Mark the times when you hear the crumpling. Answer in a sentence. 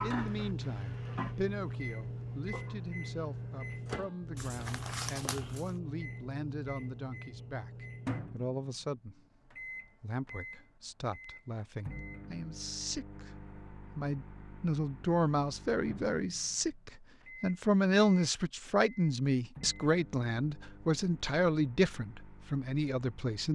The crumpling can be heard from 4.3 to 5.8 s.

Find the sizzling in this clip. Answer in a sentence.
You can hear the sizzling from 0.0 to 3.8 s.